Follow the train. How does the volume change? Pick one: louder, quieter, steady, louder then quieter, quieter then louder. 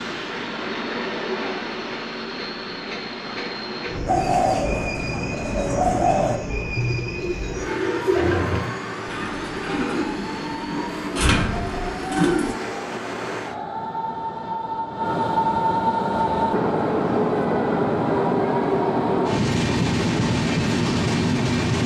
louder.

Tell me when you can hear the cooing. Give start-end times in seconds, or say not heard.
4.0-12.6.